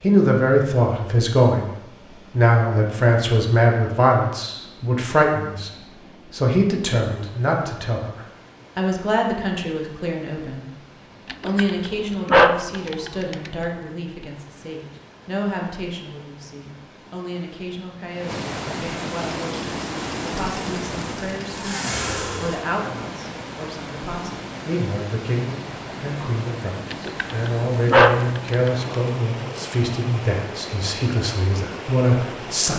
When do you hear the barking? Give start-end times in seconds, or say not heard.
11.2-13.5, 26.9-28.9.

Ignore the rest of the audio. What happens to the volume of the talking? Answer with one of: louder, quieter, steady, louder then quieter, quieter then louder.
quieter then louder.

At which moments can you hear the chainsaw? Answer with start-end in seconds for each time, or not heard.
19.1-22.6.